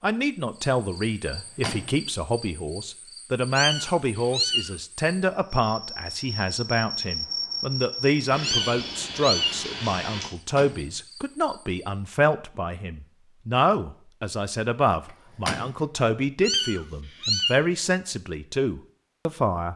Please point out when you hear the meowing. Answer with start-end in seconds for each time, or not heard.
3.5-4.7, 8.4-9.6, 16.4-17.6.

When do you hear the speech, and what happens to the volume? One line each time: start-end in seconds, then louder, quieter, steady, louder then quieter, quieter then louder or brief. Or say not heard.
0.0-19.7 steady.